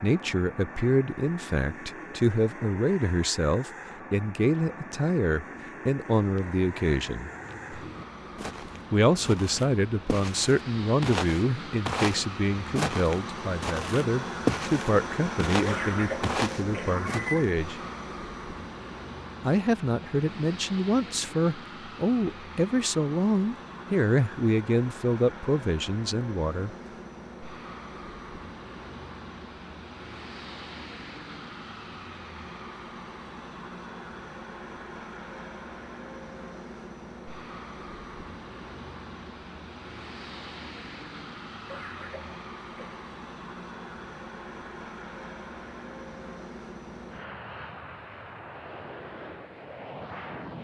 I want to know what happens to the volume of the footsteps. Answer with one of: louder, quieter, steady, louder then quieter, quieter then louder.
louder.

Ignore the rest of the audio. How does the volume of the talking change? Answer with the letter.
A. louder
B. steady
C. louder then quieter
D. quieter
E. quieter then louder
B.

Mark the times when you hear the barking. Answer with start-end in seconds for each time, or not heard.
not heard.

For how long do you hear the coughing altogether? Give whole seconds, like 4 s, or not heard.
3 s.